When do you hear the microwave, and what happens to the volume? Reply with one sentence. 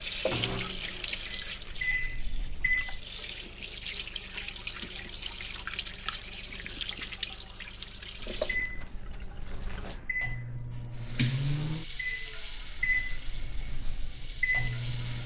You can hear the microwave briefly from 0.1 to 3.0 s; and from 8.4 to 15.2 s, getting louder.